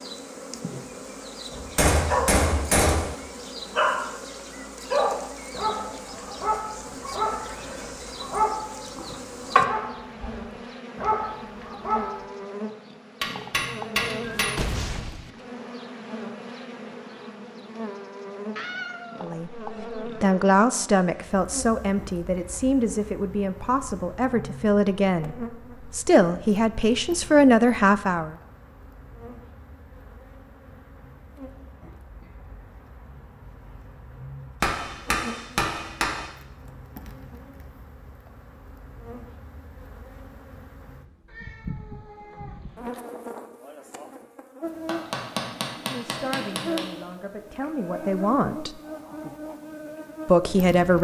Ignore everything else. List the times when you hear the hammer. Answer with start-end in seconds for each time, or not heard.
1.5-3.1, 13.2-14.7, 34.6-36.2, 44.9-46.8.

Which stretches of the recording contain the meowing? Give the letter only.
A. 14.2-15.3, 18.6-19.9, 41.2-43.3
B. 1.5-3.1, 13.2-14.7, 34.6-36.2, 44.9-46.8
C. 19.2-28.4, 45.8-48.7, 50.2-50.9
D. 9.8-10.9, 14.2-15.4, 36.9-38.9
A.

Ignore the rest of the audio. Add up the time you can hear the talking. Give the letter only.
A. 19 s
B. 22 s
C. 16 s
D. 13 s
D.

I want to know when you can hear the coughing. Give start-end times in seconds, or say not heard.
not heard.